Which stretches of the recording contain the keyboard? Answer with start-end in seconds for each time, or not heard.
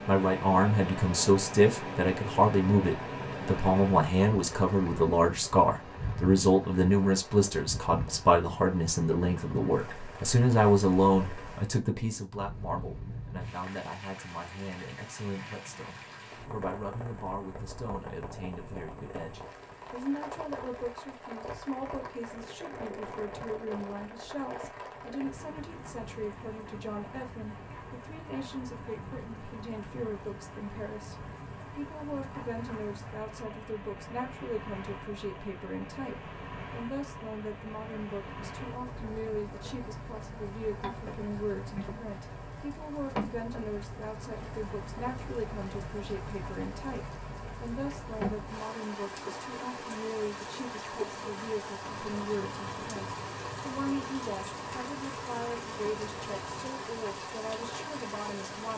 not heard.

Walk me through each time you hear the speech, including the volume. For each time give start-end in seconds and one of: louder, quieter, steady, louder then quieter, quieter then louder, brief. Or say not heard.
0.1-58.7 quieter.